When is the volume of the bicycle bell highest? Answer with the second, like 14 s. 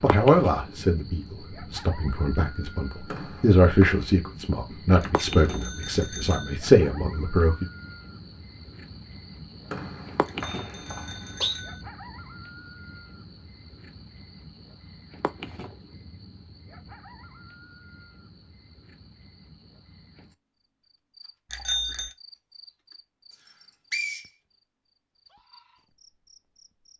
22 s.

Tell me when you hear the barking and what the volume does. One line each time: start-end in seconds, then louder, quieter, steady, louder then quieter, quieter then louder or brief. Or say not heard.
not heard.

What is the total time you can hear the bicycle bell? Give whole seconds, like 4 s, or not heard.
4 s.